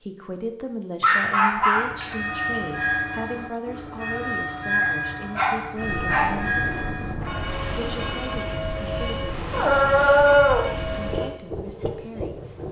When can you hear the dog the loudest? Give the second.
10 s.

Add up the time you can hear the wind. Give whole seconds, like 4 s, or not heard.
7 s.